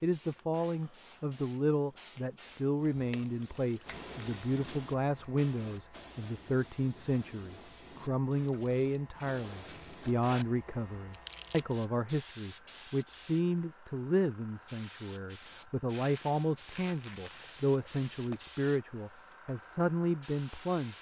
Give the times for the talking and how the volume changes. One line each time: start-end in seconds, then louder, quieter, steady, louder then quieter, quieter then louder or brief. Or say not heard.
0.0-20.9 steady.